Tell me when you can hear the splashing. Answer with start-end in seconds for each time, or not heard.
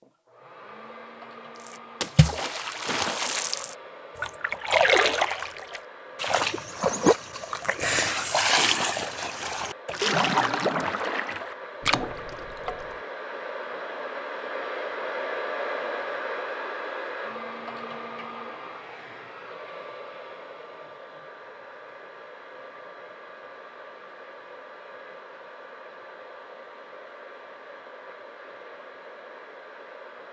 1.6-12.9.